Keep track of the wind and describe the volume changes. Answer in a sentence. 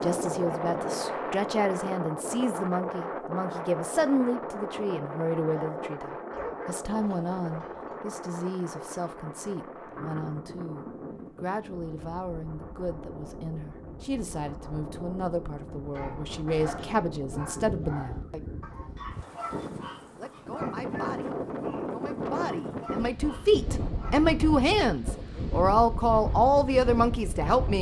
The loudness of the wind goes down, then up.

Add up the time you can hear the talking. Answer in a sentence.
The talking can be heard for 26 seconds in total.